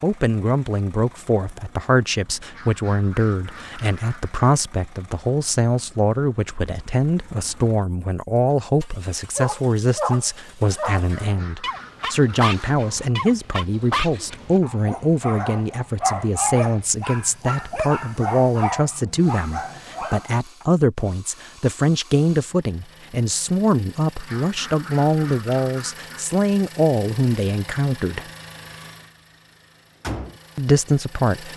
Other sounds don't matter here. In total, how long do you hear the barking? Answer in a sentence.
The barking can be heard for 11 seconds in total.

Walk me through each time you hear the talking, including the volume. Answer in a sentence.
The talking can be heard from 0.0 to 28.2 s, at a steady volume; and briefly from 30.6 to 31.5 s.